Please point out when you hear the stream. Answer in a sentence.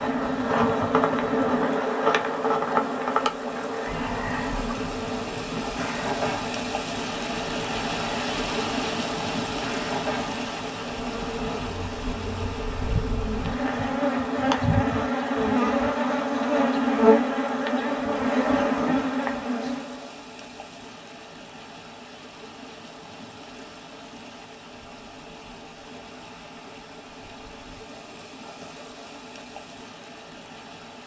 You can hear the stream from 0.0 to 31.0 s.